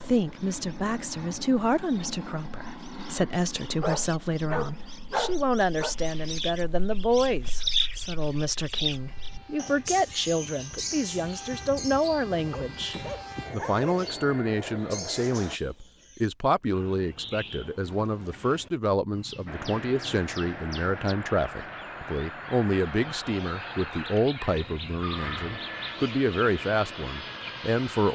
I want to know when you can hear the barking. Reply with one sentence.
The barking can be heard from 3.6 to 6.0 s, from 12.3 to 13.8 s and from 24.4 to 25.6 s.